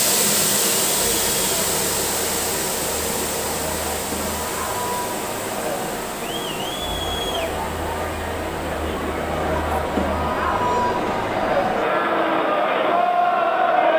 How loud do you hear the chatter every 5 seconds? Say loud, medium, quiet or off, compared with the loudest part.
medium, medium, loud.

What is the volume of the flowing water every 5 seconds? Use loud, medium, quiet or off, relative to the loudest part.
loud, medium, quiet.